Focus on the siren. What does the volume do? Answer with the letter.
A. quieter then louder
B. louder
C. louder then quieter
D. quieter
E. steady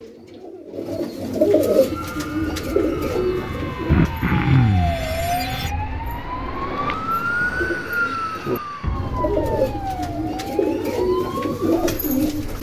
C.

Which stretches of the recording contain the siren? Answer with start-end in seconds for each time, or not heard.
1.6-12.5.